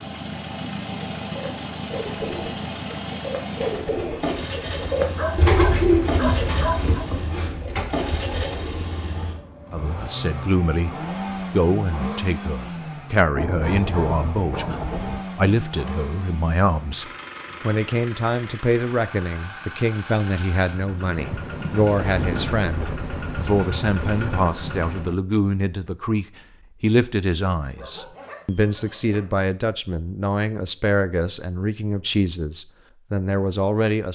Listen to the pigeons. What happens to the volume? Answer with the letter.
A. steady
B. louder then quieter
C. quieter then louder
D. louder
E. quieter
B.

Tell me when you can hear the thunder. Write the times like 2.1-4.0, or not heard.
13.3-15.2, 21.1-25.1.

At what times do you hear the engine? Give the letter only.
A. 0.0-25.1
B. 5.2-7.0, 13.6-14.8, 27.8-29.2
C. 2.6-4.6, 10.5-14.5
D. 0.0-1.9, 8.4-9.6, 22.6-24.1
A.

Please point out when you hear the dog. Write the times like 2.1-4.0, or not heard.
5.2-7.0, 13.6-14.8, 27.8-29.2.